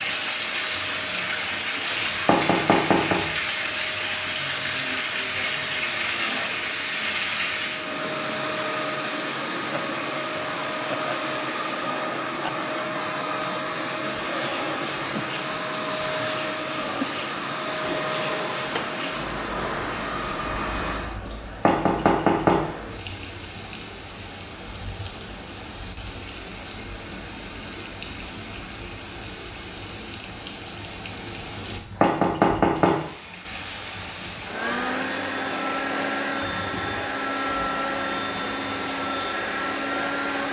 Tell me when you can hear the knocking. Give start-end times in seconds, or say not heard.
1.9-3.2, 21.3-22.6, 31.6-33.0.